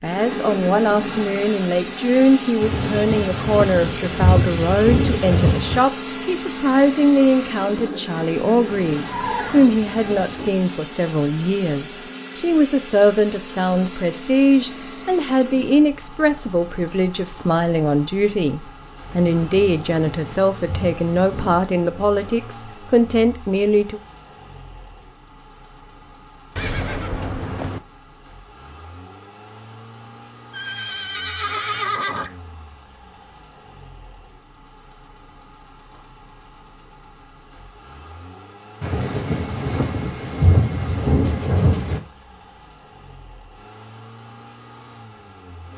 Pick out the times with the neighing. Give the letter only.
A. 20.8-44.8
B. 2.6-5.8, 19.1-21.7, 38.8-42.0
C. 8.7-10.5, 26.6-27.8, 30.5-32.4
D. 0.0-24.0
C.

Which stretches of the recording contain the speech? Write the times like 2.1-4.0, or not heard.
0.0-24.0.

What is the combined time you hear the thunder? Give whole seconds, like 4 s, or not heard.
9 s.